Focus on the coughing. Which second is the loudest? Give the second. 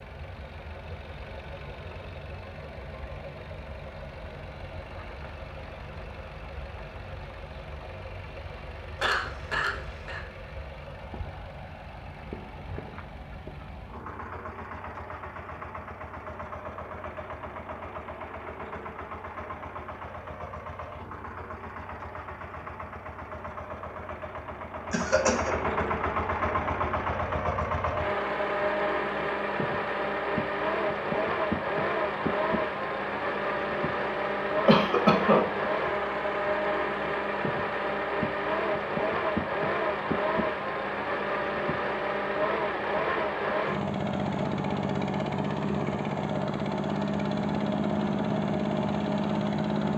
35 s.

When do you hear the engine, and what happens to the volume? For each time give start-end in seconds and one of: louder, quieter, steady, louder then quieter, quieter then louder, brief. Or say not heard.
0.0-49.9 louder.